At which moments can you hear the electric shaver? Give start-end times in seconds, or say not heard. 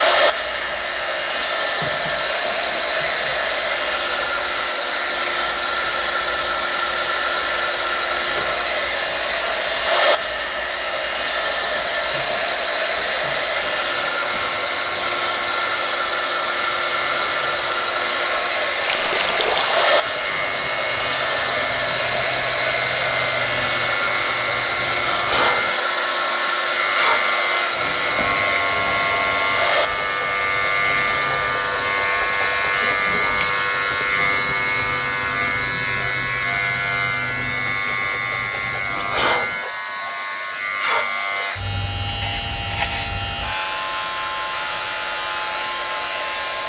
0.0-46.6.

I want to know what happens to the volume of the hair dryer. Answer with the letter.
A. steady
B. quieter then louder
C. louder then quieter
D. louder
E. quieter
E.